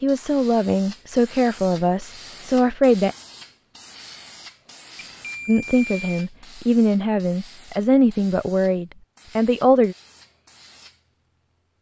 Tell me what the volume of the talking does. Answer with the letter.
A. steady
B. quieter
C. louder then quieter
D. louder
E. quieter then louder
A.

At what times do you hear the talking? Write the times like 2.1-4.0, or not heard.
0.0-3.1, 5.5-9.9.